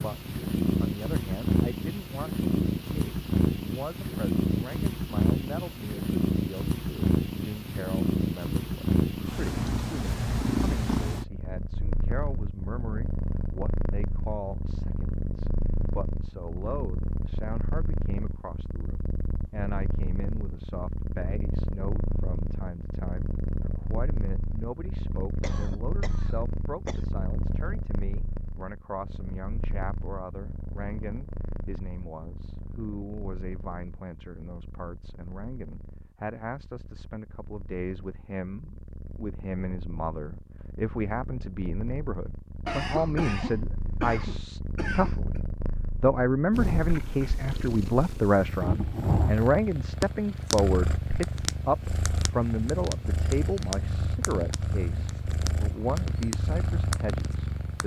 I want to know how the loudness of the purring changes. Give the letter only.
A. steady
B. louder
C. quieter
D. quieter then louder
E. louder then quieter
D.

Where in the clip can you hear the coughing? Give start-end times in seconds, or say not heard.
25.4-27.0, 42.6-45.4.